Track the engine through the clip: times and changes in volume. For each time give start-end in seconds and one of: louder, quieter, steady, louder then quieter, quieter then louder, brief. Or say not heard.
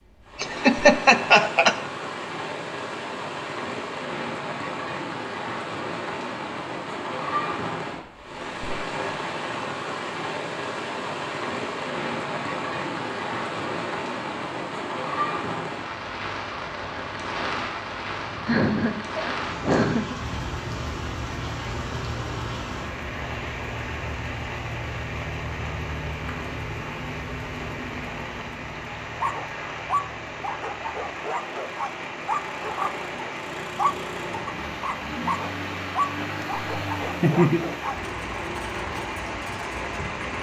20.1-40.3 quieter then louder.